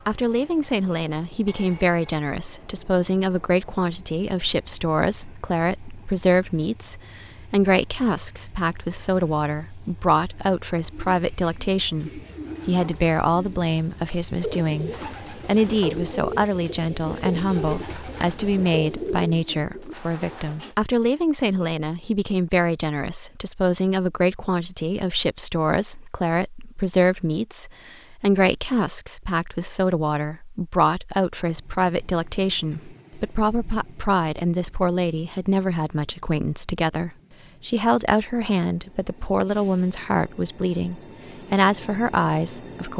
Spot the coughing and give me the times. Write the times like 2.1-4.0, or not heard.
not heard.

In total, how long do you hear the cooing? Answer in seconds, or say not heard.
10 s.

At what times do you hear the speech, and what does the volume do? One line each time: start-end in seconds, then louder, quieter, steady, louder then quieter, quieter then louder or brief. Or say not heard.
0.1-42.9 steady.